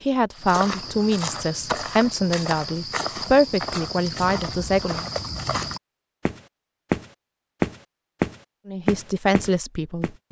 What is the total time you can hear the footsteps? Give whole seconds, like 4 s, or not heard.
10 s.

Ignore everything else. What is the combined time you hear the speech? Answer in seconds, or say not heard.
7 s.